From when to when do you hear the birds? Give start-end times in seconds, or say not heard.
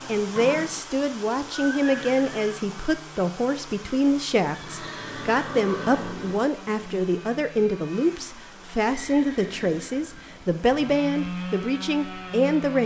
not heard.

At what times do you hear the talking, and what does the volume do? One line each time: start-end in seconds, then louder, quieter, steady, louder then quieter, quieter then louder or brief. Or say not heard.
0.1-12.8 steady.